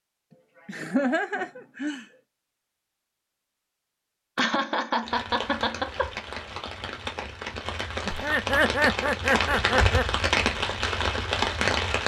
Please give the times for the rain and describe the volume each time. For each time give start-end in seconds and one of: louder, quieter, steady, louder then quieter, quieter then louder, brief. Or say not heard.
5.0-12.0 louder.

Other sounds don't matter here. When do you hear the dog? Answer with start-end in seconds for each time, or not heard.
not heard.